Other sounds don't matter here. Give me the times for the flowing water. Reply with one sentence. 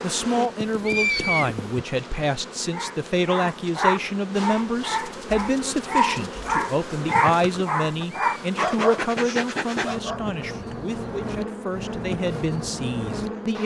The flowing water can't be heard in this clip.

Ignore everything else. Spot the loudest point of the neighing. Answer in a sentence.
The loudest moment of the neighing is at 1 second.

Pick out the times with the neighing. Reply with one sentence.
The neighing can be heard from 0.6 to 1.7 s and from 8.0 to 8.4 s.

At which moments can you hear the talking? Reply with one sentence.
You can hear the talking from 0.0 to 13.6 s.